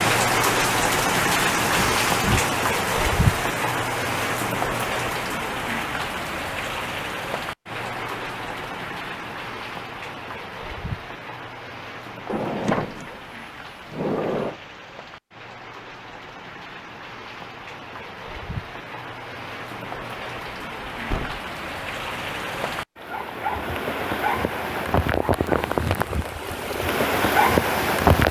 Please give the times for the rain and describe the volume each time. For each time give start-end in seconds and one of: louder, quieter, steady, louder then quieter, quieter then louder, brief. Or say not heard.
0.0-28.2 quieter then louder.